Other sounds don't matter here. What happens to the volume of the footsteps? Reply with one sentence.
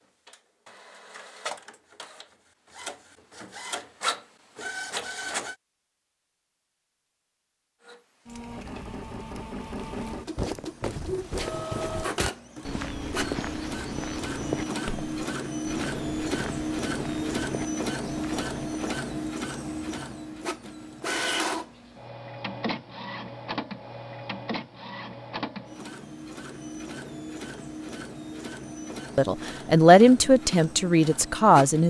The volume of the footsteps goes down.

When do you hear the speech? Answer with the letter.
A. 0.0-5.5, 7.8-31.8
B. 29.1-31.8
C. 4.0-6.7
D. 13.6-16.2
B.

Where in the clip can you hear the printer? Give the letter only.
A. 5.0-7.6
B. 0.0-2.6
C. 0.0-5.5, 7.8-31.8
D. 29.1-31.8
C.